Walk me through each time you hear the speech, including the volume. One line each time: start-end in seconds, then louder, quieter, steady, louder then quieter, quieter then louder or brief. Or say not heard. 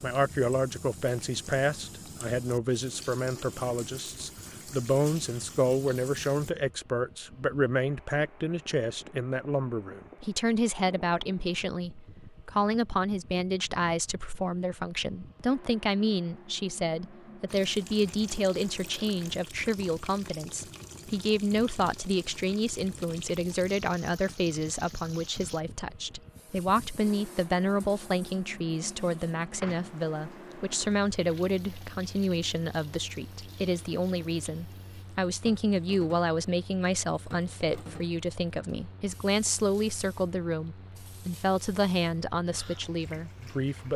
0.0-43.9 steady.